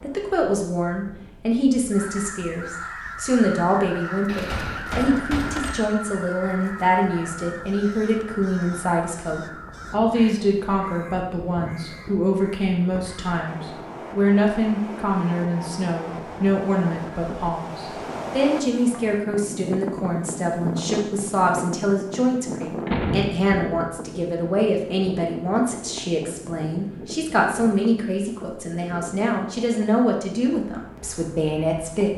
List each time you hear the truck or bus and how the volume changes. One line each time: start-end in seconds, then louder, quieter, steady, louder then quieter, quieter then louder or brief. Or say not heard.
not heard.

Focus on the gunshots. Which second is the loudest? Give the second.
23 s.